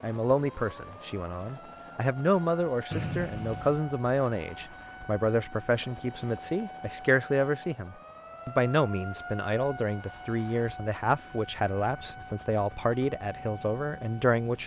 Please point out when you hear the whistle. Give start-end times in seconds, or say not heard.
2.9-3.9.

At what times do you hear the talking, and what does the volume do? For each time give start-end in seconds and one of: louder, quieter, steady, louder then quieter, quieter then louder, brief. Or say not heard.
0.0-14.6 steady.